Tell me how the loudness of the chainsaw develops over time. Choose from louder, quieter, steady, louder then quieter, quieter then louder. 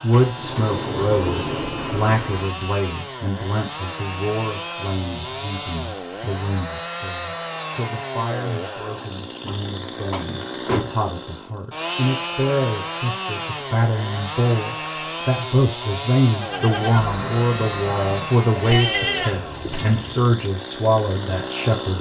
steady.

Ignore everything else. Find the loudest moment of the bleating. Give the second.
19 s.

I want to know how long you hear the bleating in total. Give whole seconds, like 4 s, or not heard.
4 s.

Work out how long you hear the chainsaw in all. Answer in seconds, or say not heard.
22 s.